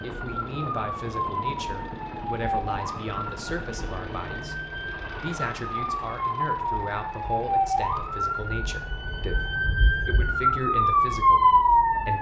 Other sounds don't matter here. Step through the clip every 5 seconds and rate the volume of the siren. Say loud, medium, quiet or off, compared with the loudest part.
quiet, medium, loud.